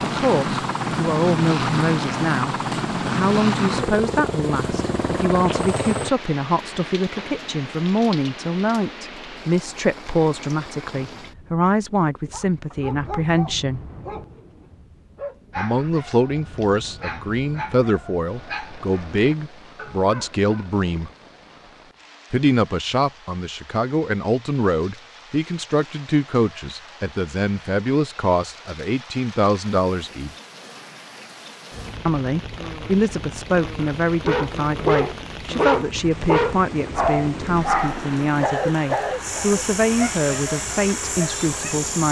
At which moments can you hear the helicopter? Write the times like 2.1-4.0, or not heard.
0.0-6.1, 31.7-42.0.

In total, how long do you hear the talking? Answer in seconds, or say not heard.
37 s.